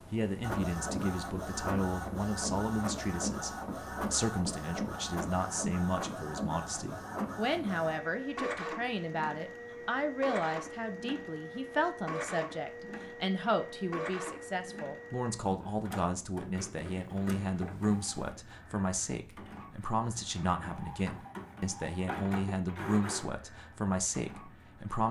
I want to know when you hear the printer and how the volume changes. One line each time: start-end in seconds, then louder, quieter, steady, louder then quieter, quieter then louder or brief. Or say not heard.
0.0-25.0 quieter.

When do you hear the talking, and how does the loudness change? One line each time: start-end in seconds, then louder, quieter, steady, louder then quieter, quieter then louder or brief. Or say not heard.
0.1-25.0 steady.